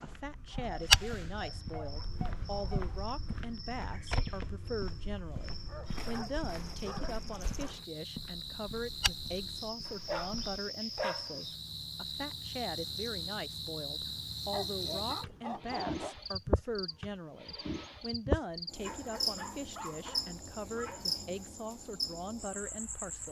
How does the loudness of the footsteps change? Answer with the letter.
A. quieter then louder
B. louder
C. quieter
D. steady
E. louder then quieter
C.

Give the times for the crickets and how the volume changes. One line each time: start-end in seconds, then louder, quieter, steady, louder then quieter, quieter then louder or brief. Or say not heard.
0.0-23.2 louder.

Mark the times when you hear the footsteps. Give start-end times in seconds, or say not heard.
0.0-10.7.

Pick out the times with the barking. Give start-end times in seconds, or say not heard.
0.5-3.0, 5.5-7.8, 9.8-11.6, 14.5-16.1, 18.8-21.3.